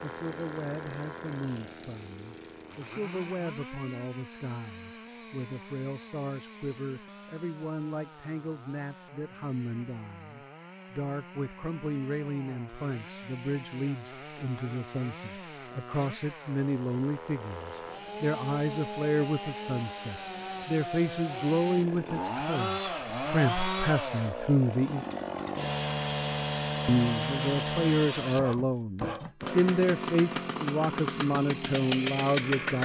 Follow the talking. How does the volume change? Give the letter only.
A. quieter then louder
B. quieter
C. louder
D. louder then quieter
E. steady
C.